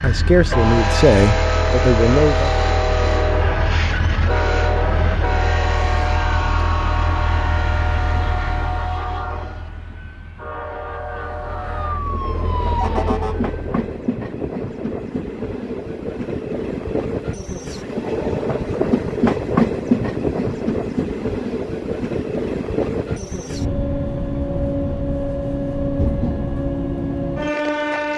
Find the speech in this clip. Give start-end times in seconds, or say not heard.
0.0-2.5.